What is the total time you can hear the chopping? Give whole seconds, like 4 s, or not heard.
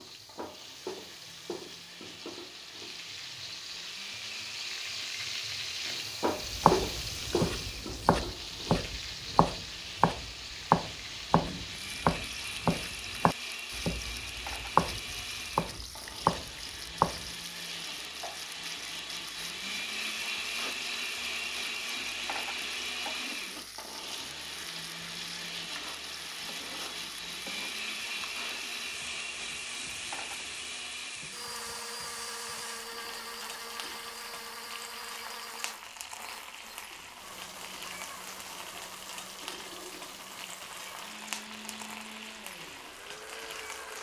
11 s.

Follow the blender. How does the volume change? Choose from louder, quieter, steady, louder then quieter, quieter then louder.
louder then quieter.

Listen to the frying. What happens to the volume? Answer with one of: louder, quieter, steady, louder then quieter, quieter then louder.
quieter.